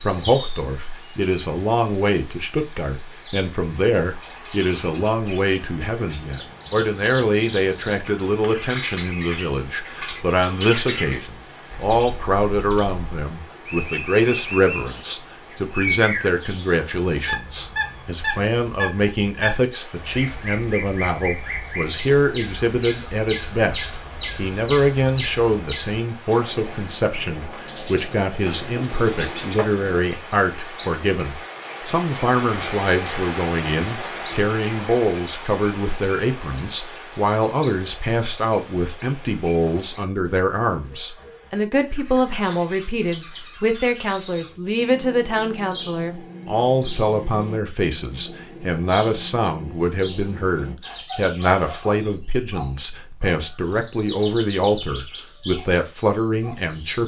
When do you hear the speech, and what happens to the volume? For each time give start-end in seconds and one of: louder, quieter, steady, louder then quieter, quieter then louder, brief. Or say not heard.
0.0-57.0 steady.